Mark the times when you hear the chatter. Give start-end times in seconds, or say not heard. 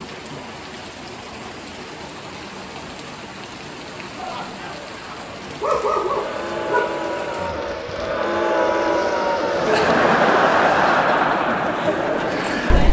4.2-12.8.